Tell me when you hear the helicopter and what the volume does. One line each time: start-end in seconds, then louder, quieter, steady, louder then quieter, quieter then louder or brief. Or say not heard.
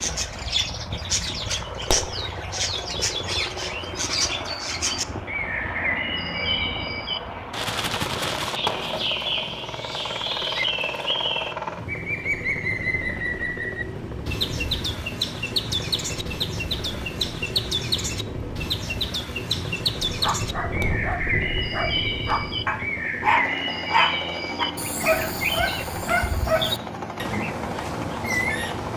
0.0-28.9 steady.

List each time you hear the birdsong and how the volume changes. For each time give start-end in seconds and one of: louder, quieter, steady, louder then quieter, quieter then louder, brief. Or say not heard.
0.0-28.9 steady.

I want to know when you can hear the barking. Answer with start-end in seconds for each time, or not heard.
20.1-26.8.